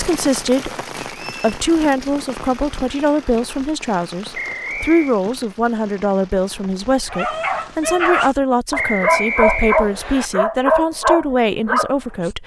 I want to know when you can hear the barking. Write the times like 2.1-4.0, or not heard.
7.1-12.3.